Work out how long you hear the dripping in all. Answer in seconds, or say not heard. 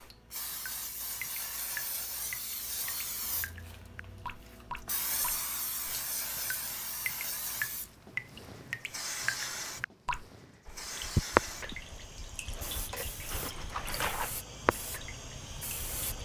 16 s.